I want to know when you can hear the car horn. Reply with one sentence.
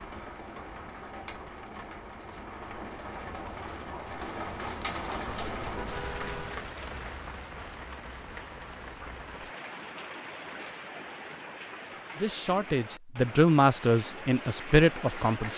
The car horn can be heard from 5.5 to 6.7 s.